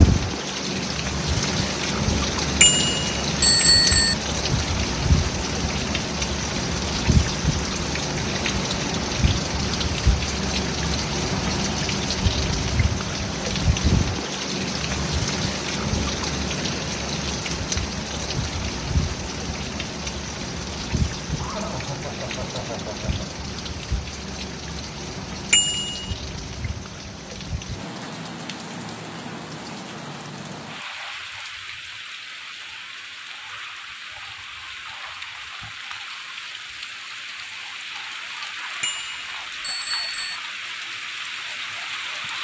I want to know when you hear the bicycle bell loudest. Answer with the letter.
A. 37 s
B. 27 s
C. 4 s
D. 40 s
C.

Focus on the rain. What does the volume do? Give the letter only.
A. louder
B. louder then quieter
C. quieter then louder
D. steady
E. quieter
E.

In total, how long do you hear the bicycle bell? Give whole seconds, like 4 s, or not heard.
4 s.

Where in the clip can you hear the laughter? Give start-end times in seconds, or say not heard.
21.2-23.3.